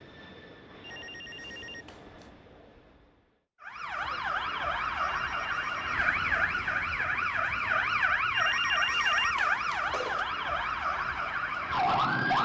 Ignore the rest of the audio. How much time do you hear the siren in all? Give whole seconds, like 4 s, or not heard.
9 s.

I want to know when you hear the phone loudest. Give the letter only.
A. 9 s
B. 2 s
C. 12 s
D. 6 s
A.